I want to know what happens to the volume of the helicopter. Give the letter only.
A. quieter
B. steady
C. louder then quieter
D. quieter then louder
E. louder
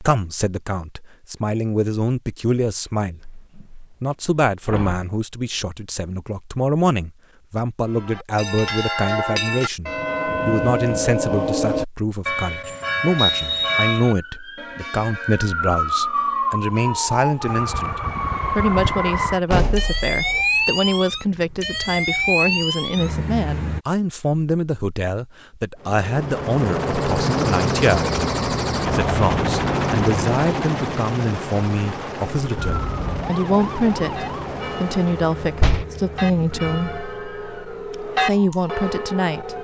A.